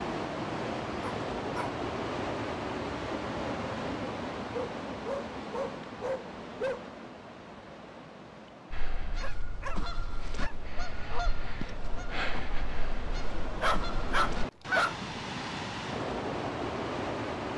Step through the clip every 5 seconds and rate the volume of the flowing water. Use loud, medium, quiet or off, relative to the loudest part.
loud, medium, medium, loud.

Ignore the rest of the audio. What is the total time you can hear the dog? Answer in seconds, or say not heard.
6 s.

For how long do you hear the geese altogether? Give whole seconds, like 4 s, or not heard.
6 s.